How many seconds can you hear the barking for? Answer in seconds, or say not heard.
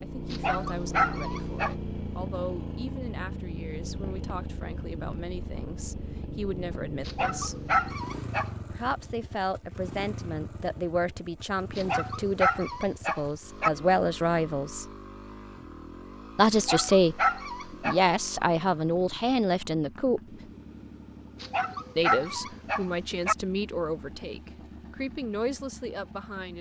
8 s.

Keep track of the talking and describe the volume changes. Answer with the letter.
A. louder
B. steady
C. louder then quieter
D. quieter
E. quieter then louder
C.